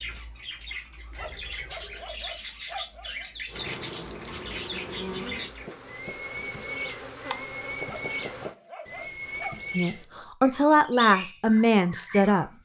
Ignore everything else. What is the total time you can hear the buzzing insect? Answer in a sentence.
You can hear the buzzing insect for 5 seconds altogether.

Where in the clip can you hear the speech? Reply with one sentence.
The speech can be heard from 9.8 to 12.6 s.